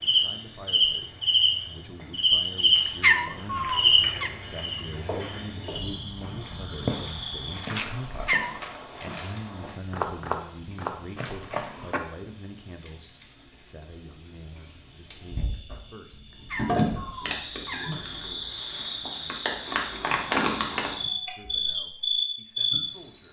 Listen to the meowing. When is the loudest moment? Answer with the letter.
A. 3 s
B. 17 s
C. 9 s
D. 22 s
A.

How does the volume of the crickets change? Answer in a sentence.
The loudness of the crickets goes down, then up.